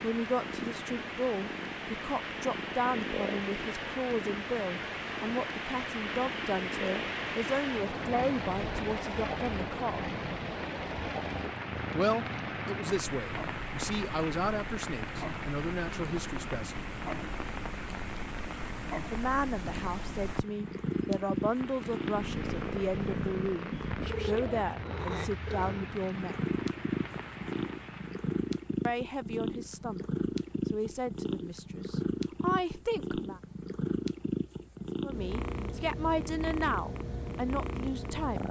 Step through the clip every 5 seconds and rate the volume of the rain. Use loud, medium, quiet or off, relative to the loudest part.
loud, loud, loud, medium, medium, medium, off, off.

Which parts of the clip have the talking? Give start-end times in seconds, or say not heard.
0.0-10.0, 11.9-16.9, 19.1-26.5, 28.9-30.1, 30.6-33.4, 35.0-38.4.